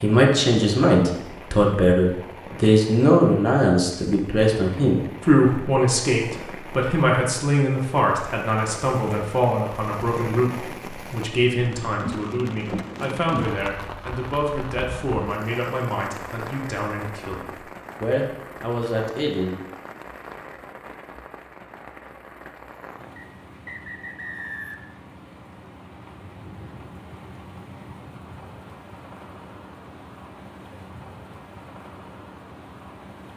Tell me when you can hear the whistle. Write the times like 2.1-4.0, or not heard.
23.1-24.9.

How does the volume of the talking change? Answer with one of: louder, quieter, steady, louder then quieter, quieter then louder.
quieter.